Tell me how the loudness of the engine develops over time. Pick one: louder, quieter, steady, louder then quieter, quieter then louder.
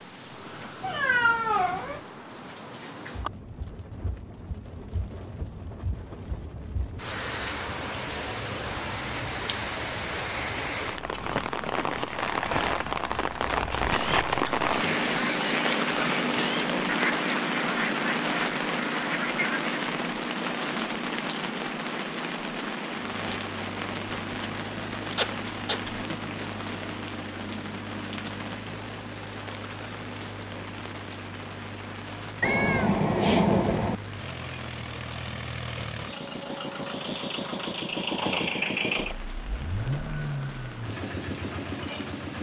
louder.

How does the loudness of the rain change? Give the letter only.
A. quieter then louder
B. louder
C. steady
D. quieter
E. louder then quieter
E.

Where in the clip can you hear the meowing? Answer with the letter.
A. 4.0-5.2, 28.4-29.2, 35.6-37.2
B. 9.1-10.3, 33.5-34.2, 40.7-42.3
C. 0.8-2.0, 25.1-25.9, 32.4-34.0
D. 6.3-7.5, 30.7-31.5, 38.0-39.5
C.